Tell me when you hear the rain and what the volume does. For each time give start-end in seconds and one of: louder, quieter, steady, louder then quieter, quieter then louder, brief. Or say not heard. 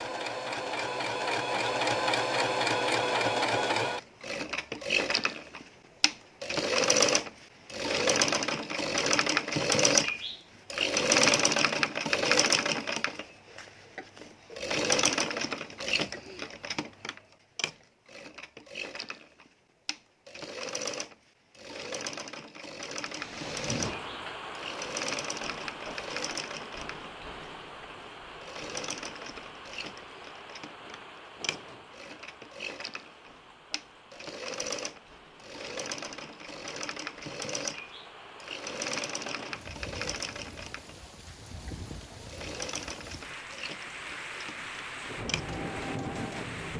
23.0-46.7 quieter then louder.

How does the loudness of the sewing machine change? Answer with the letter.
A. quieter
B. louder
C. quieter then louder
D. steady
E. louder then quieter
A.